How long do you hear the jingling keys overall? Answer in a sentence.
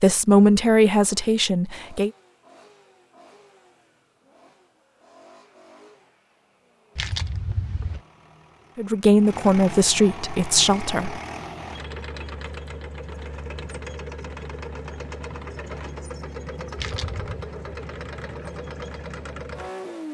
You can hear the jingling keys for 2 seconds altogether.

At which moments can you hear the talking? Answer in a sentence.
The talking can be heard from 0.0 to 2.1 s and from 8.8 to 11.2 s.